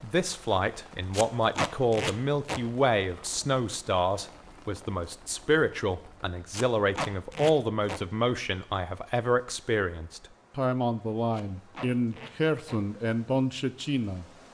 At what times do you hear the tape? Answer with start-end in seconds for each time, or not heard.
1.1-2.6, 6.5-8.0, 11.3-12.8.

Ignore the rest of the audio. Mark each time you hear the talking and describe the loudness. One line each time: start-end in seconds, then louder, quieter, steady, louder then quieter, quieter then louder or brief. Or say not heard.
0.0-14.2 steady.